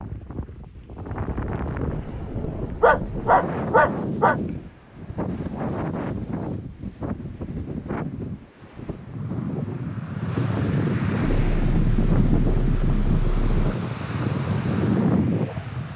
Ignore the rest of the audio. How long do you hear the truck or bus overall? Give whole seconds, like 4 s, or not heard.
2 s.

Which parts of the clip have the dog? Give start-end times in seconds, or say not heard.
2.8-4.3.